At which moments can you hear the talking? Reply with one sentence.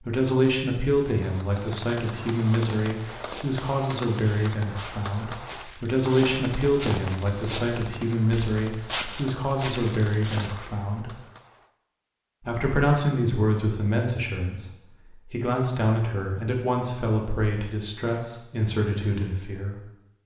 The talking can be heard from 0.0 to 11.1 s and from 12.4 to 19.9 s.